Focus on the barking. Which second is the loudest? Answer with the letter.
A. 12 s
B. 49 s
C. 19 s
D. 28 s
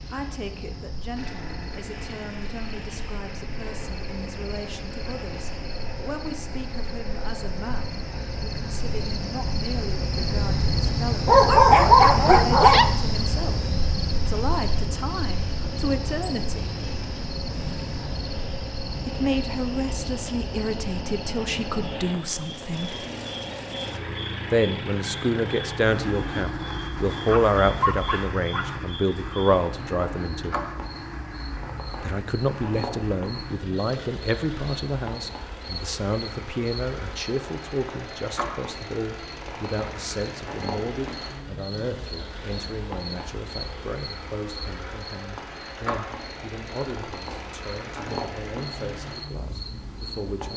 A.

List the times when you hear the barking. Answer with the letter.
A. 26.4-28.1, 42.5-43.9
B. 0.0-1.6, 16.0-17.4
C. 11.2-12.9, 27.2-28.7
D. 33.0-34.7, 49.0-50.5
C.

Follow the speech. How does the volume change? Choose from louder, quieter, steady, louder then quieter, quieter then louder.
louder then quieter.